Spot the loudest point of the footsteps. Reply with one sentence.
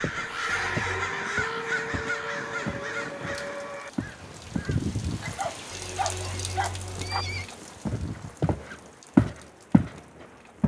The volume of the footsteps peaks at 9 seconds.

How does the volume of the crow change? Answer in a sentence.
The loudness of the crow goes down.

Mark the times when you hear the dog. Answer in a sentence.
The dog can be heard from 5.2 to 7.2 s.